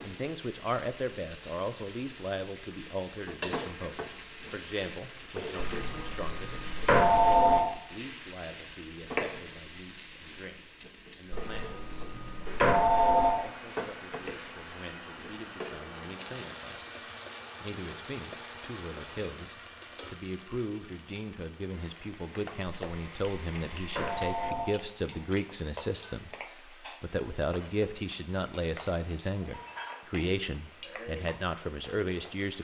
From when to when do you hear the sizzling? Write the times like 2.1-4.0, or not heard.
0.0-32.5.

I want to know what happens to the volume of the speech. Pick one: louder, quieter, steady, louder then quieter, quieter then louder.
quieter then louder.